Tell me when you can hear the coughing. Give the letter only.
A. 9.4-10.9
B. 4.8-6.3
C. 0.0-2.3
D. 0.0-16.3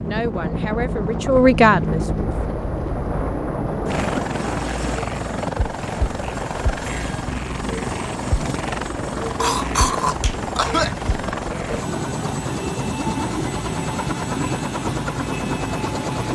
A.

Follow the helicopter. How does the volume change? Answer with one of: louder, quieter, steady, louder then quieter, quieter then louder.
steady.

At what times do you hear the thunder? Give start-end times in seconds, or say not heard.
1.4-4.3.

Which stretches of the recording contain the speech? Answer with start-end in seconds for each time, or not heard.
0.0-2.3.